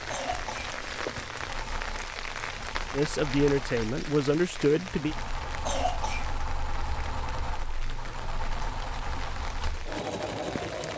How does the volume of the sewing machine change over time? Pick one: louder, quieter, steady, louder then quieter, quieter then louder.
louder.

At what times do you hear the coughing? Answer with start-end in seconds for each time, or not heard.
0.1-0.8, 5.7-6.3.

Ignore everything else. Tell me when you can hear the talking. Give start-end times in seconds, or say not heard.
2.9-5.2.